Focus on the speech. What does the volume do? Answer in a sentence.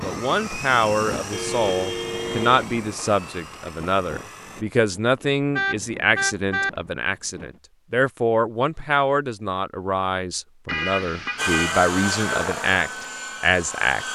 The loudness of the speech stays about the same.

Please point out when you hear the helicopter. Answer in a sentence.
You can hear the helicopter from 0.0 to 4.7 s and from 11.3 to 14.1 s.